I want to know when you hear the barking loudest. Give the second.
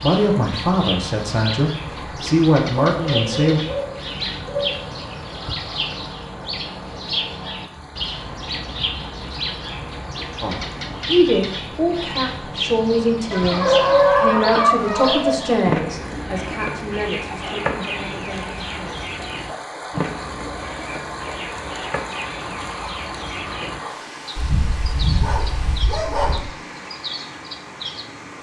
14 s.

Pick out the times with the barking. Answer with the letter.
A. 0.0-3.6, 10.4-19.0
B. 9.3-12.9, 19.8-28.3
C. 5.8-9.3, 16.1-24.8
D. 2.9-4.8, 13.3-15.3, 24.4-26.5
D.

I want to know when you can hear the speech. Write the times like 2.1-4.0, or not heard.
0.0-3.6, 10.4-19.0.